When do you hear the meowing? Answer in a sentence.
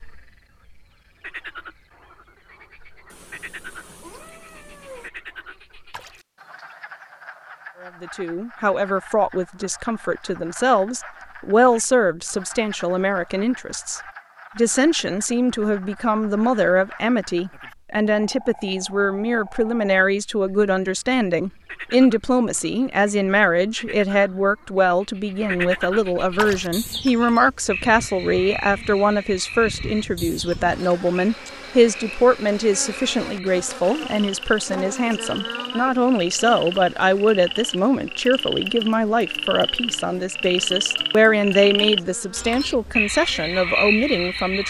You can hear the meowing from 3.1 to 5.1 s.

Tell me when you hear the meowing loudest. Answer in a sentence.
The volume of the meowing peaks at 5 seconds.